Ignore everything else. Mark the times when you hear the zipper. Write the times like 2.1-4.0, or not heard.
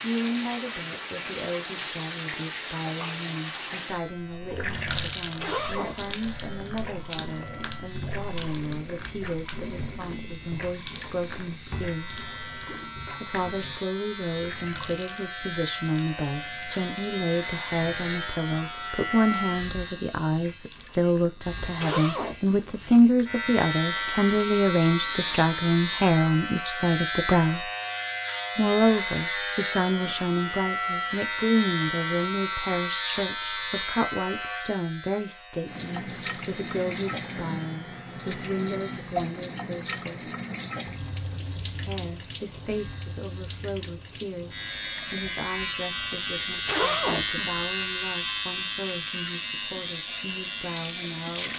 5.2-6.2, 21.6-23.1, 46.4-47.6.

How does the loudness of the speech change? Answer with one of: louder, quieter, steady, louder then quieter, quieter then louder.
louder then quieter.